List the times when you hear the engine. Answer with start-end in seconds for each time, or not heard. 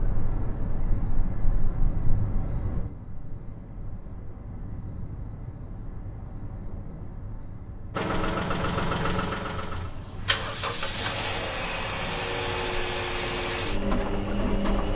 7.9-14.8.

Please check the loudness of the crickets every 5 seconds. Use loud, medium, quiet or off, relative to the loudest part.
loud, medium, medium.